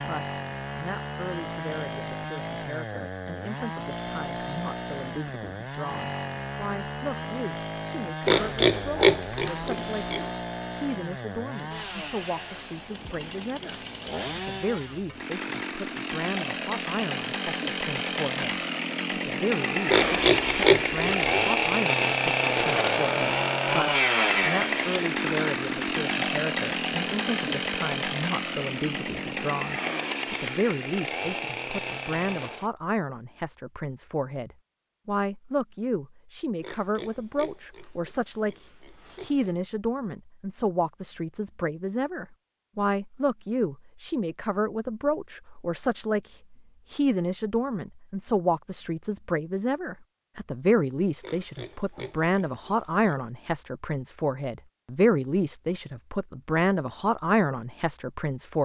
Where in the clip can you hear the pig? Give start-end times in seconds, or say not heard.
8.2-10.3, 19.9-21.7, 36.6-39.5, 51.2-53.2.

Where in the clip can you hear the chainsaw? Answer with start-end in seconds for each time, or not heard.
0.0-32.7.